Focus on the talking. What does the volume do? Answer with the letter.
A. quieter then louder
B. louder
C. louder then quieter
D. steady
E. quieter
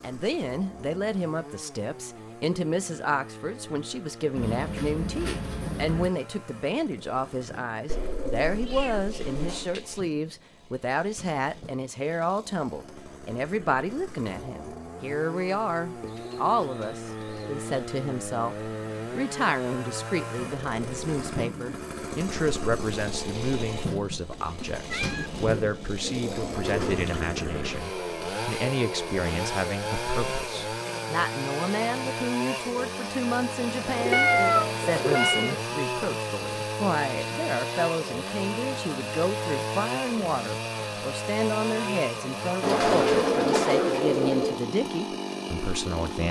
D.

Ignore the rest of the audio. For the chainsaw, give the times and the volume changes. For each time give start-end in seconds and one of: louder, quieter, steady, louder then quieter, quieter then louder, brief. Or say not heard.
0.0-46.2 louder.